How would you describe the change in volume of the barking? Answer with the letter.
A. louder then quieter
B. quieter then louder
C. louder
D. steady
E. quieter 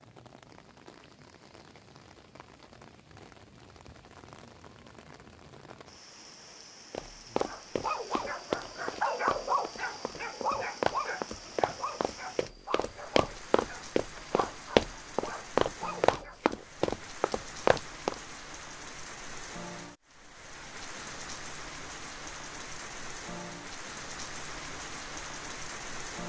E.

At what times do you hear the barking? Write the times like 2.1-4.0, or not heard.
7.4-16.6.